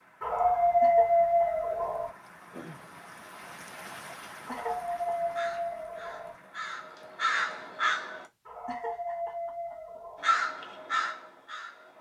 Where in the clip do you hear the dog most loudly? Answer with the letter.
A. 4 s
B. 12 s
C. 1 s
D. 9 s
C.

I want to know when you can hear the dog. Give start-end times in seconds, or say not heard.
0.2-2.1, 4.5-6.3, 8.4-10.3.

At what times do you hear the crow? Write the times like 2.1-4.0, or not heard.
5.2-8.2, 10.2-11.9.